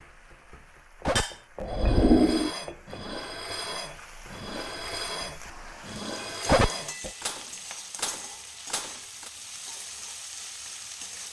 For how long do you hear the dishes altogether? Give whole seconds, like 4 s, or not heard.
8 s.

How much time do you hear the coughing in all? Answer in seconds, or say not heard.
2 s.